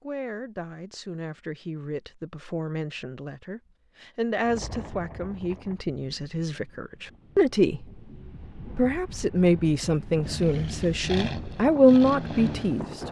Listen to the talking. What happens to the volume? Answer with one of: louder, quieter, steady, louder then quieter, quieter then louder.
louder.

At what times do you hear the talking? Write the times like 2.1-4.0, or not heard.
0.0-7.8, 8.7-12.8.